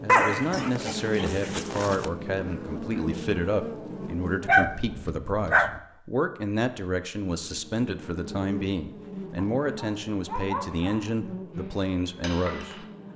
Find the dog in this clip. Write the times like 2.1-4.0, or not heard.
0.1-2.0, 4.5-5.8, 9.3-11.2.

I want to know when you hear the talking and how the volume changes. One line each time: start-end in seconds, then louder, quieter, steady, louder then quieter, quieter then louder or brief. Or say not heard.
0.0-13.1 steady.